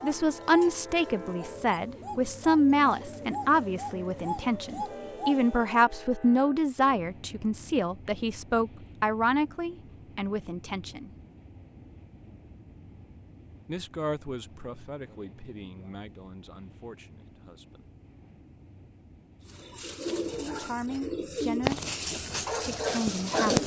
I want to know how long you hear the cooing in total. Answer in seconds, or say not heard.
10 s.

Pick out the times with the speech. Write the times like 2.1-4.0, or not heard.
0.0-11.1, 13.7-17.9, 20.6-21.9, 22.6-23.6.